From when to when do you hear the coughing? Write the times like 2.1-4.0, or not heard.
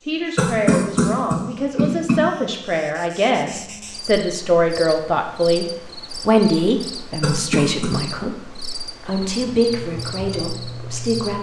0.3-2.2, 7.2-8.0.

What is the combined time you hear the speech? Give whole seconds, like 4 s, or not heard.
11 s.